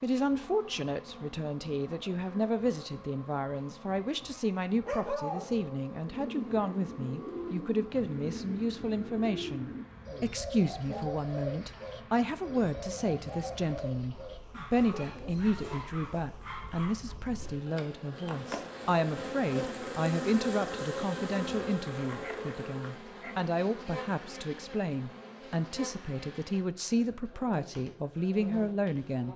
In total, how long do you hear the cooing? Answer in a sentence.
You can hear the cooing for 10 seconds altogether.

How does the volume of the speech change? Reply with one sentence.
The volume of the speech stays about the same.